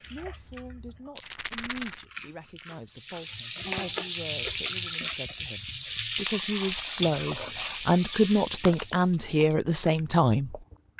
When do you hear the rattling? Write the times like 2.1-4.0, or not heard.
1.1-2.0, 6.7-7.9.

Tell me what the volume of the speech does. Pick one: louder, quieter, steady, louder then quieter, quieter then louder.
louder.